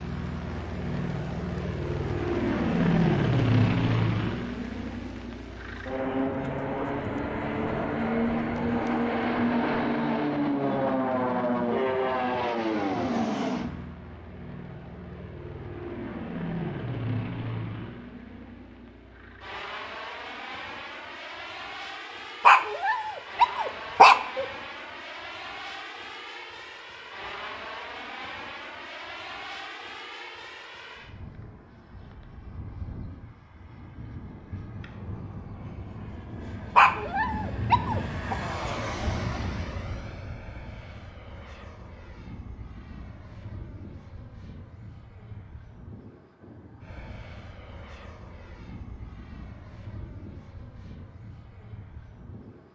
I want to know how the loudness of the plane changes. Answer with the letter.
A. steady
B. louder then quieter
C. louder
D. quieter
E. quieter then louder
D.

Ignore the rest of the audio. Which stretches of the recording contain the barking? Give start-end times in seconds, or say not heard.
22.4-24.4, 36.8-38.4.